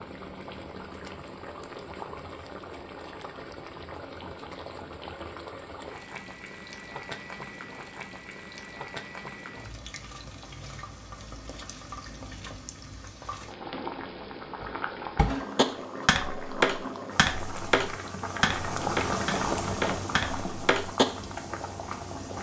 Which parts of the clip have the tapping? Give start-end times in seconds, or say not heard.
14.6-21.1.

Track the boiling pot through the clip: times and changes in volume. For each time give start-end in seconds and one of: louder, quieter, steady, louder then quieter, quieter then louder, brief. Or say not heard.
0.0-22.3 louder.